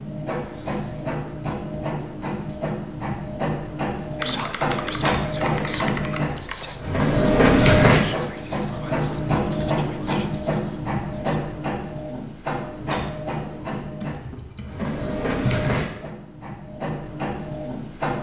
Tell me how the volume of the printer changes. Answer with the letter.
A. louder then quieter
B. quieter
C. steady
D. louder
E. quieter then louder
A.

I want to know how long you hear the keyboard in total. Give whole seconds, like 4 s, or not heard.
4 s.